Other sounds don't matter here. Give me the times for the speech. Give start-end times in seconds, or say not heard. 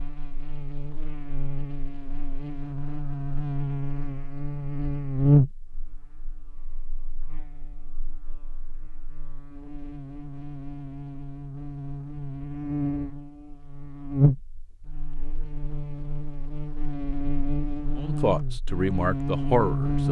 17.9-20.0.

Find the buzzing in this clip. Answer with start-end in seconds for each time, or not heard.
0.0-20.0.